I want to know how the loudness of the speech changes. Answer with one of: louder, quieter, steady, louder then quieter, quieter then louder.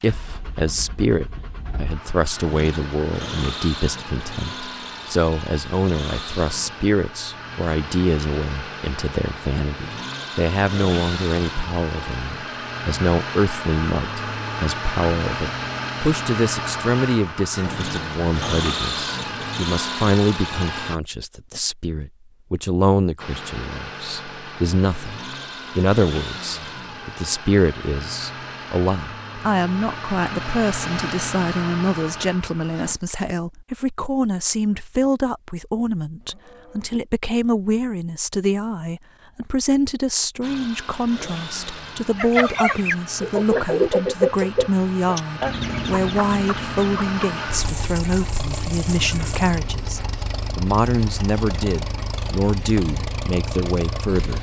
steady.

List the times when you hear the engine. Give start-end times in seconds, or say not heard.
0.0-21.0, 23.1-33.0, 40.4-54.3.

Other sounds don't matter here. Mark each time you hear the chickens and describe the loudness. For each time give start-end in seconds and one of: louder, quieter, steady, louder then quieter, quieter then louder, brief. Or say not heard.
42.1-49.5 quieter.